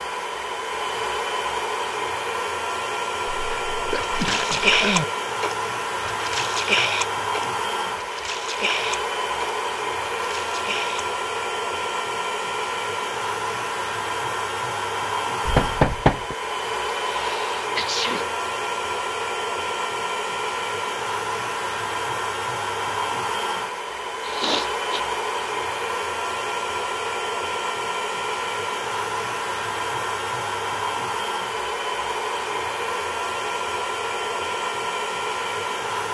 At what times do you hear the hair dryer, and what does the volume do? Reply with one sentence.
The hair dryer can be heard from 0.0 to 36.0 s, at a steady volume.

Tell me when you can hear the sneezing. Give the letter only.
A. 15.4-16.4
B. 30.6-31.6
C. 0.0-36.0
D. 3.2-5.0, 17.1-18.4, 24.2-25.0
D.